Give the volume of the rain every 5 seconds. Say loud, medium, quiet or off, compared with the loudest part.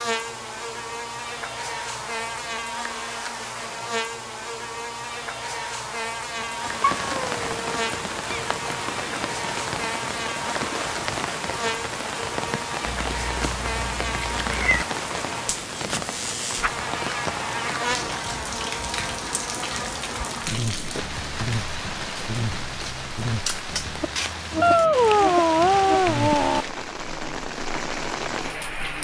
off, loud, loud, loud, loud, loud.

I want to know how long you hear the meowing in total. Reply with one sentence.
You can hear the meowing for 5 seconds altogether.